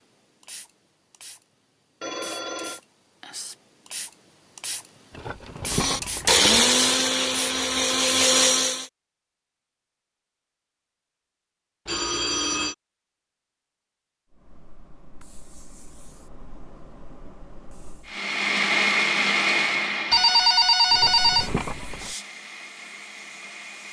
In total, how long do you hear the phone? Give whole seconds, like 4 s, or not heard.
3 s.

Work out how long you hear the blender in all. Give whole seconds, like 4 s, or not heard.
9 s.